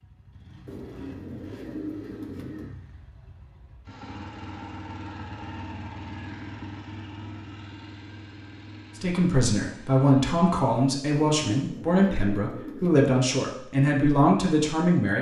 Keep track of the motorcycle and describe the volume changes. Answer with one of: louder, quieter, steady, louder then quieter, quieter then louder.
louder then quieter.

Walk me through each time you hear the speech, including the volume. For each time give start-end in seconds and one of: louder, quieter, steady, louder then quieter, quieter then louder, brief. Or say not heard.
8.9-15.1 steady.